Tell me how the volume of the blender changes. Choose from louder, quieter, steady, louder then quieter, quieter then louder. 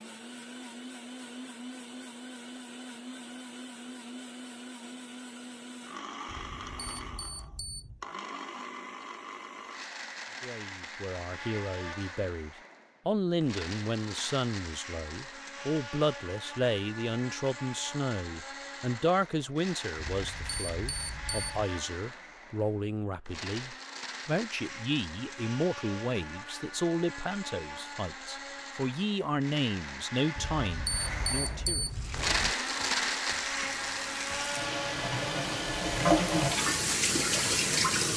louder.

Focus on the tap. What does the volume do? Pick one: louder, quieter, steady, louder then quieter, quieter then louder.
louder.